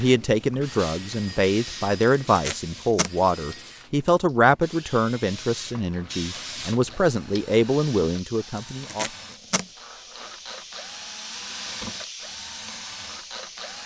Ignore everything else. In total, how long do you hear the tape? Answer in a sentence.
The tape can be heard for 2 seconds in total.